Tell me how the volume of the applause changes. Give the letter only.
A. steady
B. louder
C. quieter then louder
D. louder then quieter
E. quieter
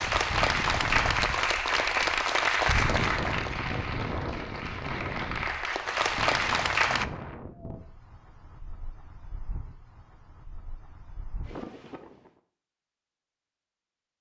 C.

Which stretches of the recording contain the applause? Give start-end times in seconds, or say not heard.
0.0-7.0.